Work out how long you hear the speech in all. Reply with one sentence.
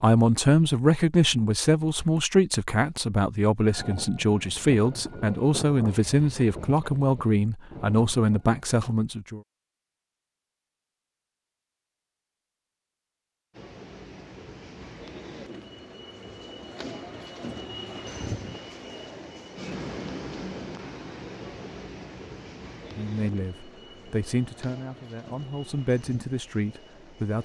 You can hear the speech for 14 seconds altogether.